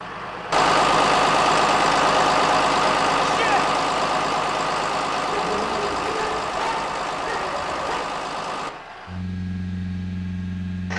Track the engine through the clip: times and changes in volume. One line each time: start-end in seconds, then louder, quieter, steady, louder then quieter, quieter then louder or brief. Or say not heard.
0.0-10.9 quieter.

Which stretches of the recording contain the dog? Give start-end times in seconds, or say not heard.
5.3-8.1.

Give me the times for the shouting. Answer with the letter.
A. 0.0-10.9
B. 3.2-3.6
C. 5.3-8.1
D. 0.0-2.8
B.